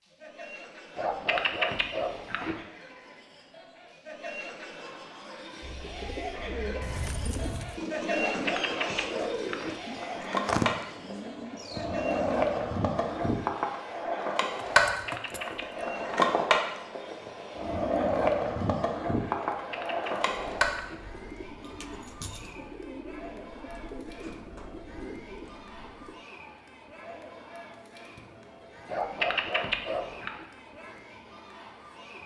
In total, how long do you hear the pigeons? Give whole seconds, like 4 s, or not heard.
13 s.